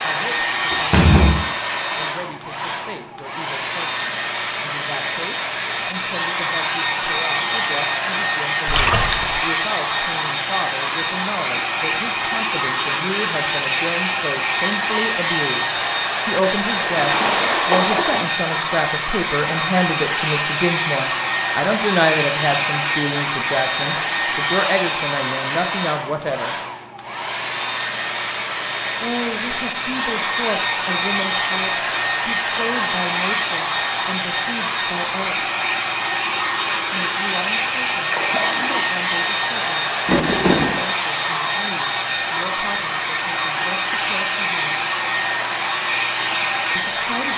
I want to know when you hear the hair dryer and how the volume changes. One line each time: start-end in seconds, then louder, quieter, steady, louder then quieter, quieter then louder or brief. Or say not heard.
0.0-47.3 steady.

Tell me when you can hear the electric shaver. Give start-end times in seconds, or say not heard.
not heard.